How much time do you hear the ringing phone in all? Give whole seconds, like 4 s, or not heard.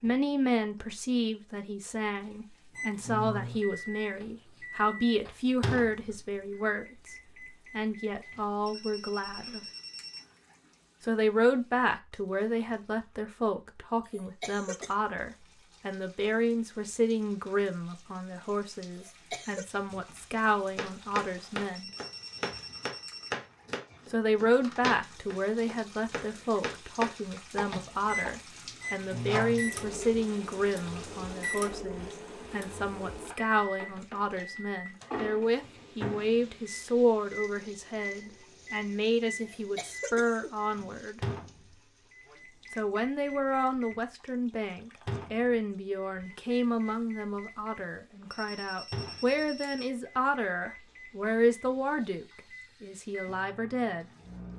6 s.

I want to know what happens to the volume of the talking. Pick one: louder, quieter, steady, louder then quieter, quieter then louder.
steady.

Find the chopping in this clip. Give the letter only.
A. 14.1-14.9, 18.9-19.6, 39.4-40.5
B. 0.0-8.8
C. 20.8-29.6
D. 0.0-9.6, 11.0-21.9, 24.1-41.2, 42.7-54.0
C.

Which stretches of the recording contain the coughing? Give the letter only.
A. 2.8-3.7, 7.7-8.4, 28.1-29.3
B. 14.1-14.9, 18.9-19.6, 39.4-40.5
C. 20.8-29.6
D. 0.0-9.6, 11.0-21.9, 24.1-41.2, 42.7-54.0
B.